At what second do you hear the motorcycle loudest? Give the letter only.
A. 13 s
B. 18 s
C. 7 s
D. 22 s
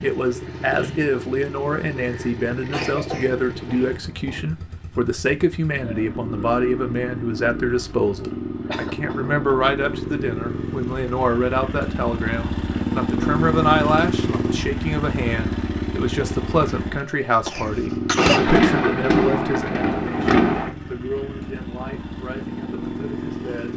A.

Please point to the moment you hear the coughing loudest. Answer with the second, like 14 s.
18 s.